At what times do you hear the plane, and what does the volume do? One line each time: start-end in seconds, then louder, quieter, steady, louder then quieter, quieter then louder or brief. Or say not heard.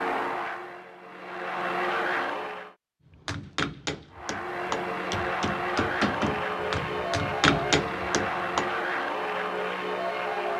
0.0-2.8 brief
4.1-10.5 steady.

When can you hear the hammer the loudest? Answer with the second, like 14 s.
8 s.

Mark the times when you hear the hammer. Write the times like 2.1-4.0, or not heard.
3.1-8.7.